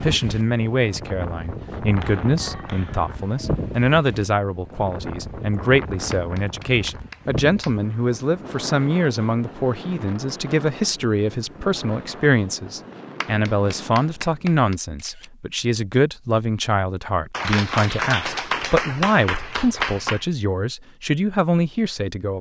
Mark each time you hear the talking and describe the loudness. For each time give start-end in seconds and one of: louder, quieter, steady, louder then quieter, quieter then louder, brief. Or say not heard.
0.0-22.3 steady.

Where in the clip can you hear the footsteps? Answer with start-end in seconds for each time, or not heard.
not heard.